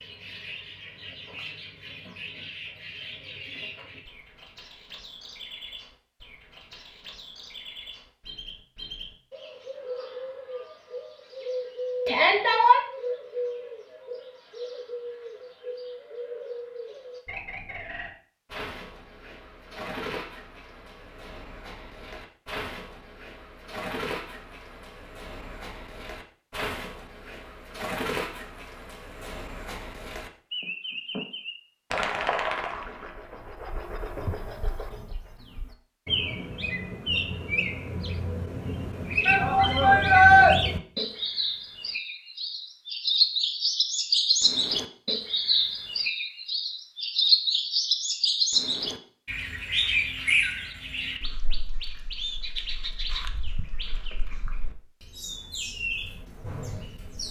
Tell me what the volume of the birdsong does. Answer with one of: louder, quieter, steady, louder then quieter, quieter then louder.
louder.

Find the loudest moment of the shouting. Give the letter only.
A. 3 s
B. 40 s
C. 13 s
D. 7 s
B.